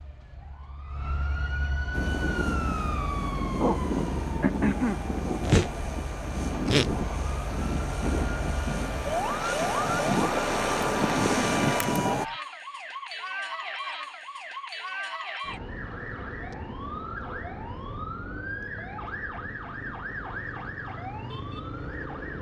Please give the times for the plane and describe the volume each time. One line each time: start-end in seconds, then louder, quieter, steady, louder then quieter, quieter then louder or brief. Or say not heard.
1.9-12.2 louder.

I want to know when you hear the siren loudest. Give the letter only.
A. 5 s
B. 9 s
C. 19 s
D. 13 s
A.